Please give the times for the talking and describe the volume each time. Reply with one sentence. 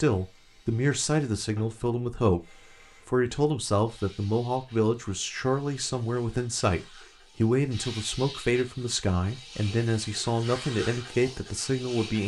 The talking can be heard from 0.0 to 12.2 s, at a steady volume.